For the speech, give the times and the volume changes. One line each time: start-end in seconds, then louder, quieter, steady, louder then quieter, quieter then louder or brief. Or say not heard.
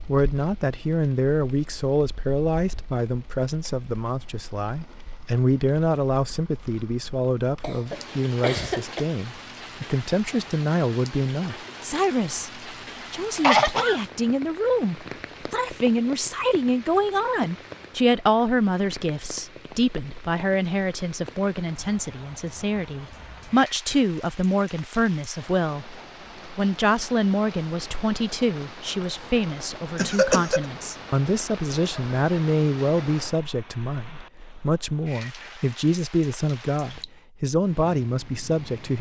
0.1-25.9 steady
26.6-38.9 steady.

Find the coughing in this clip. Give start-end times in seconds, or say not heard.
7.6-9.1, 13.3-14.0, 29.9-30.6.